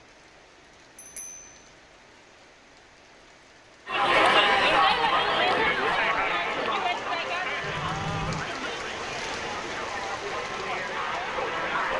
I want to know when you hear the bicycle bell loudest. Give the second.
8 s.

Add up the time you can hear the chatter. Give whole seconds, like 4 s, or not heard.
8 s.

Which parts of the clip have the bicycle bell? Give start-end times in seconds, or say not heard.
0.9-1.6, 7.6-8.5.